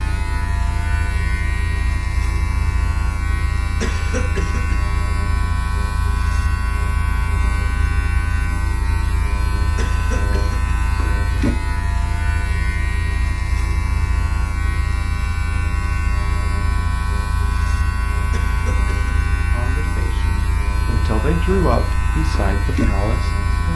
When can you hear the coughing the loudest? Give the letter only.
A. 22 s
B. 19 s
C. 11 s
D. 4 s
D.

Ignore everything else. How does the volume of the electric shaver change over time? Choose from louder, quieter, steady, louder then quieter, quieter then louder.
steady.